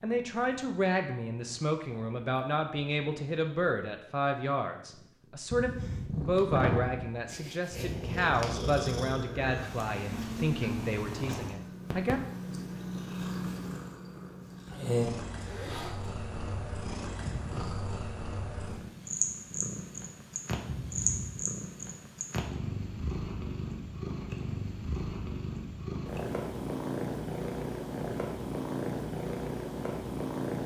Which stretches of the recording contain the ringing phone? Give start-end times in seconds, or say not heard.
5.5-6.1, 17.2-17.9, 20.6-21.4.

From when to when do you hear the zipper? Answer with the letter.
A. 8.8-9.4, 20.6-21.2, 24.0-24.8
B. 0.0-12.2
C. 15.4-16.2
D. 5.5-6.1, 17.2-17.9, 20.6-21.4
C.